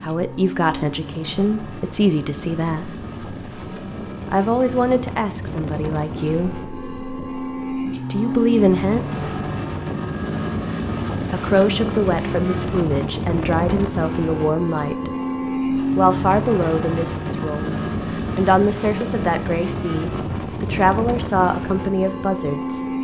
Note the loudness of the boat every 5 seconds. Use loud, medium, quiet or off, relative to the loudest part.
medium, loud, loud, loud, loud.